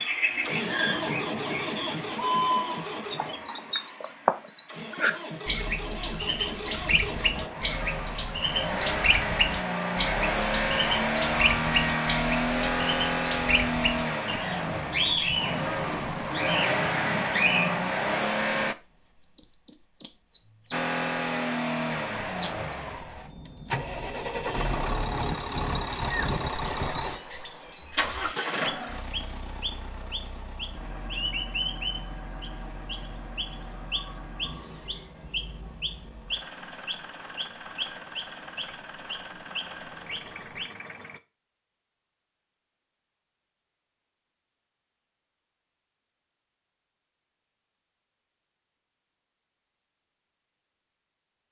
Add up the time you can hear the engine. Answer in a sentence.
You can hear the engine for 39 seconds altogether.